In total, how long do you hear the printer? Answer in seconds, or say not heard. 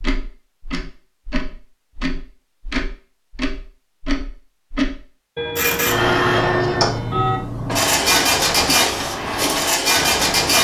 5 s.